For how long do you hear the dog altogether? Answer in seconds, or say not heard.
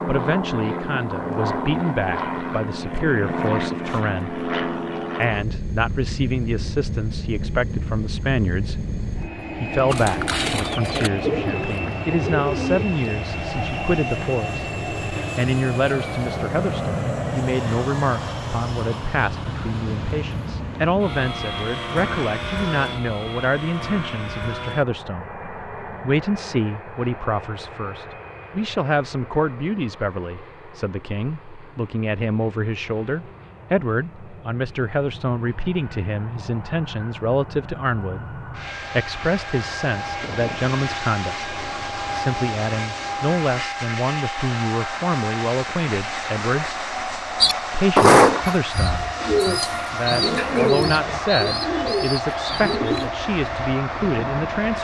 not heard.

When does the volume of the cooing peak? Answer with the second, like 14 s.
48 s.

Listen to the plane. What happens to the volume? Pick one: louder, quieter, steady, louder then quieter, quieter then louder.
quieter then louder.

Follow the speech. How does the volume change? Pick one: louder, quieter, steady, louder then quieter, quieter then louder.
steady.